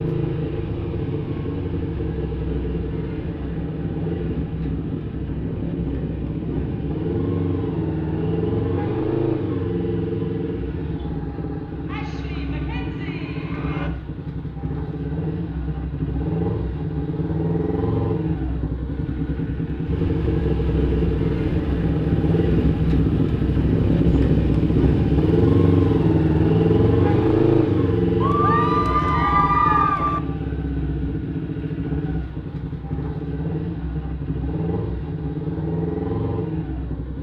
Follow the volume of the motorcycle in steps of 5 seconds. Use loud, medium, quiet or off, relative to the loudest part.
medium, medium, medium, medium, loud, loud, medium, medium.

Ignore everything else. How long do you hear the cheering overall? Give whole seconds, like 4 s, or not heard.
4 s.